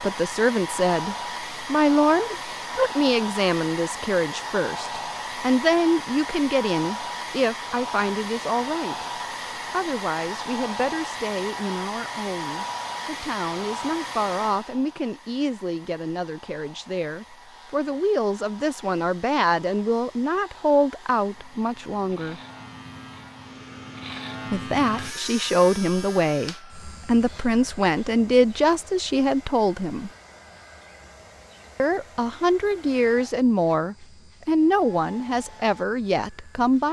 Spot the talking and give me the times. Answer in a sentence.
You can hear the talking from 0.0 to 9.1 s, from 9.7 to 22.4 s, from 24.5 to 30.1 s and from 31.8 to 36.8 s.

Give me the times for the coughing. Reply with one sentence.
You can't hear the coughing here.